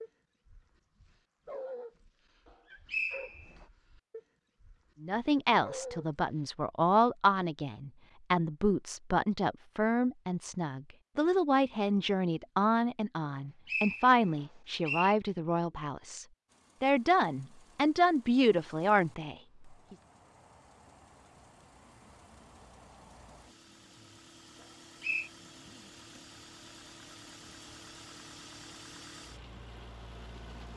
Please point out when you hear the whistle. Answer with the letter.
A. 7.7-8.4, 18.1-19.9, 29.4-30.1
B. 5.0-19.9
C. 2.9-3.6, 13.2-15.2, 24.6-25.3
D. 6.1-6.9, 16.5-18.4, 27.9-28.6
C.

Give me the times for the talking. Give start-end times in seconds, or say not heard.
5.0-19.9.